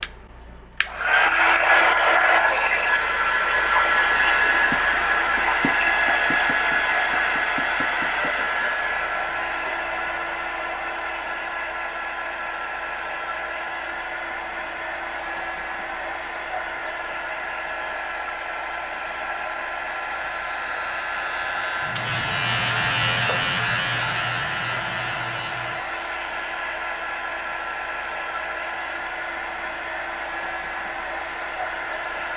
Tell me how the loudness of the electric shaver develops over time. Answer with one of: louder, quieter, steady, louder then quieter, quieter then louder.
louder then quieter.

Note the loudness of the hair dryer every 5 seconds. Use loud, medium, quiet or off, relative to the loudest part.
loud, loud, medium, medium, medium, medium, medium.